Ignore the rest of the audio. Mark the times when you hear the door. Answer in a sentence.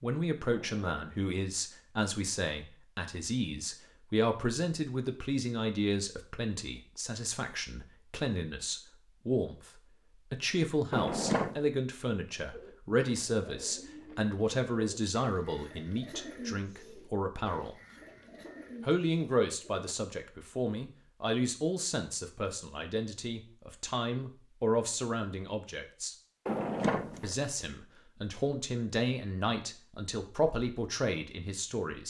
The door can be heard from 0.5 to 1.2 s, from 10.9 to 11.6 s and from 26.4 to 27.4 s.